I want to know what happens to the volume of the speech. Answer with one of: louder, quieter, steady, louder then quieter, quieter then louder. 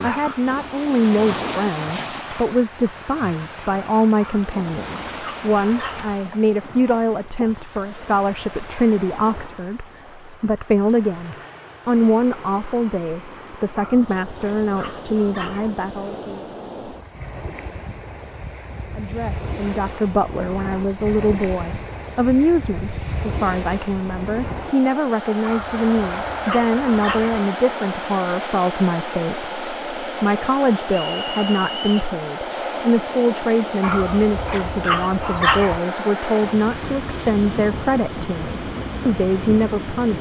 steady.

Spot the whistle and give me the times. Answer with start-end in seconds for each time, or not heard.
30.9-32.0.